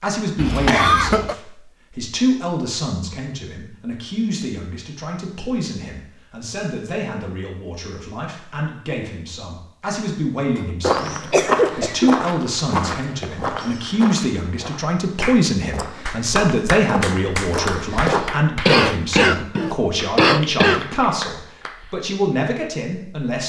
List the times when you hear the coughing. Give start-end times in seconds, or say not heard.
0.3-1.4, 11.3-12.2, 18.2-20.9.